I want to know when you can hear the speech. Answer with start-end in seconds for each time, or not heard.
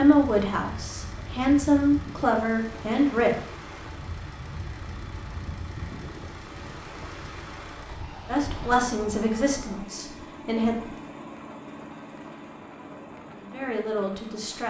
0.0-3.4, 8.2-10.8, 12.8-14.6.